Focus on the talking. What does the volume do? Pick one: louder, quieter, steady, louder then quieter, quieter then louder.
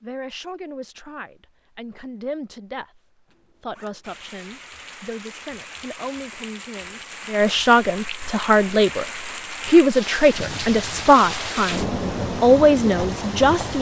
louder.